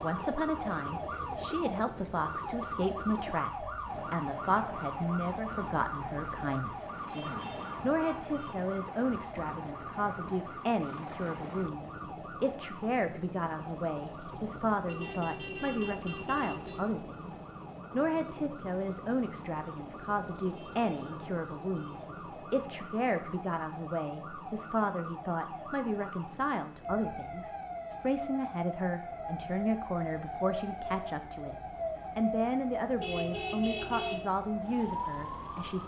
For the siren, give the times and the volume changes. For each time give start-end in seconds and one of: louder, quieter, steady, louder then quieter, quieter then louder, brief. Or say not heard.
0.0-35.8 quieter then louder.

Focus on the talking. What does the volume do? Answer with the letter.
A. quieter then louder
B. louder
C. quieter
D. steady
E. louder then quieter
D.